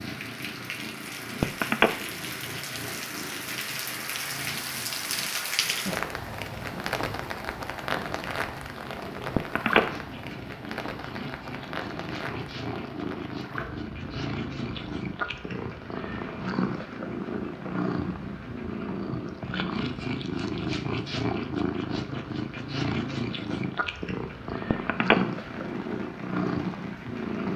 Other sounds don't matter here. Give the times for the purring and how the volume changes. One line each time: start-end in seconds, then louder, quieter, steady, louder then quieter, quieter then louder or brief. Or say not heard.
0.0-27.5 louder.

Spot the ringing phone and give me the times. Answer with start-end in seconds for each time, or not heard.
1.4-1.9, 9.3-9.8, 24.7-25.1.